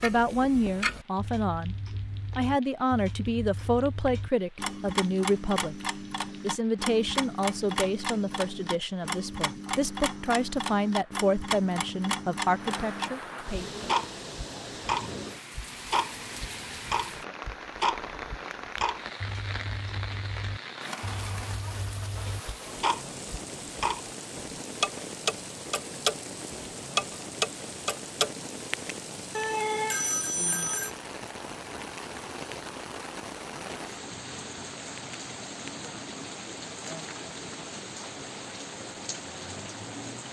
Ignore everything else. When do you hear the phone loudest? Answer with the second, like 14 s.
30 s.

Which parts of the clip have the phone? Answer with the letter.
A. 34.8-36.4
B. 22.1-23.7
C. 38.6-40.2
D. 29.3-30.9
D.